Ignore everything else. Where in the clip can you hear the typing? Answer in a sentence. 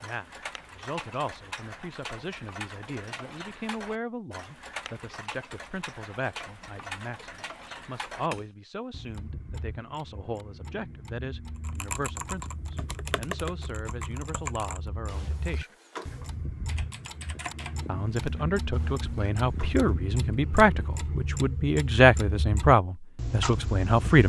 The typing can be heard from 11.6 to 20.4 s.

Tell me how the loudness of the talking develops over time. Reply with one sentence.
The volume of the talking goes up.